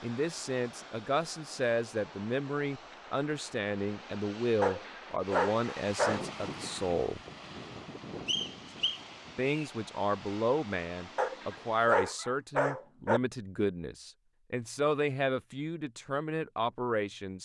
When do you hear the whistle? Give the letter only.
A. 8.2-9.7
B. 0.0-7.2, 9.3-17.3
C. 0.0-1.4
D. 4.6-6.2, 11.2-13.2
A.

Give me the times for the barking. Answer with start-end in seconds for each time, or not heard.
4.6-6.2, 11.2-13.2.